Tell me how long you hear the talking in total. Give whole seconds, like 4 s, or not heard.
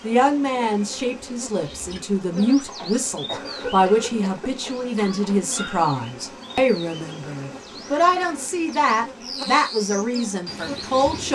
11 s.